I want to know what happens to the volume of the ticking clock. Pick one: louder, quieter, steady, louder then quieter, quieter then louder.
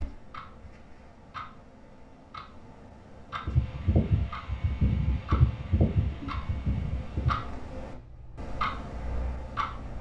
louder.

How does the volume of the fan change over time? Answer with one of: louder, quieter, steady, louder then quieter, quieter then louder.
quieter.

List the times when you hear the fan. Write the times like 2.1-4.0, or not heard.
3.5-9.9.